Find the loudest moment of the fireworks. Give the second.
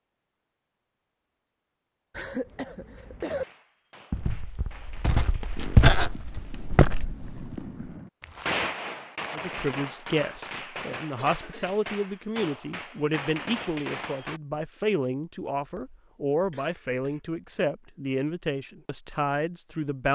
9 s.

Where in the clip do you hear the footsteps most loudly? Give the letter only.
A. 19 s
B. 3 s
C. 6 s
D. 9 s
C.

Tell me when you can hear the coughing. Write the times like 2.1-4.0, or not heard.
2.1-3.5, 11.2-11.8, 15.6-17.4.